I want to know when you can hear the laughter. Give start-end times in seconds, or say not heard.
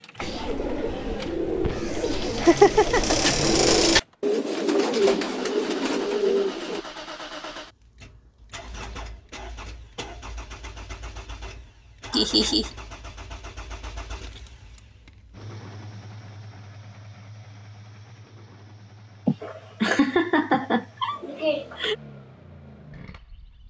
2.4-3.4, 12.1-12.7, 19.2-21.9.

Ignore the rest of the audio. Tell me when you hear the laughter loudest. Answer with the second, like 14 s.
3 s.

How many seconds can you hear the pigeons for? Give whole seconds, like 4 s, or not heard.
7 s.